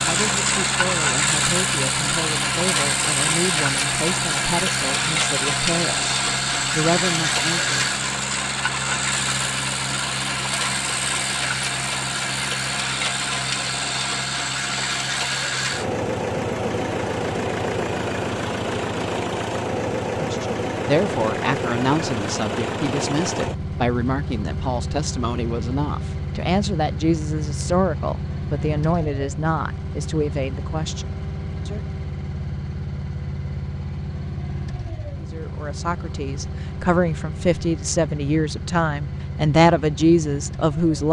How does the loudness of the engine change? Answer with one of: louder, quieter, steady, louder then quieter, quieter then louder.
quieter.